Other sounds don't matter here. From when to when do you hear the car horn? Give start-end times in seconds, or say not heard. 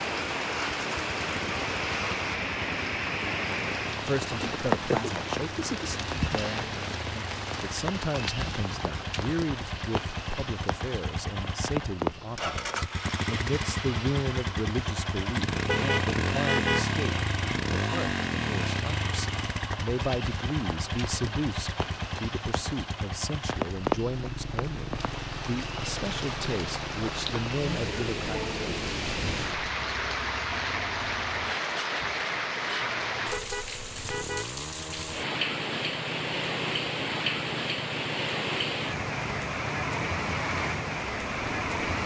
15.7-16.9, 33.2-34.5.